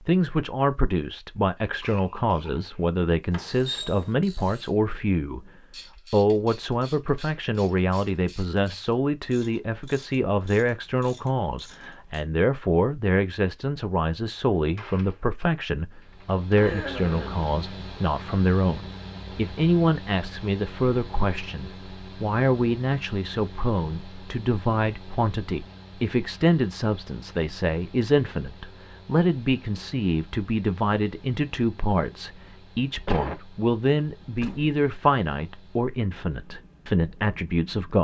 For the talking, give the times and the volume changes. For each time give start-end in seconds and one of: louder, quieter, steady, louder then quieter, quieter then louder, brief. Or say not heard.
0.1-5.5 steady
6.1-37.9 steady.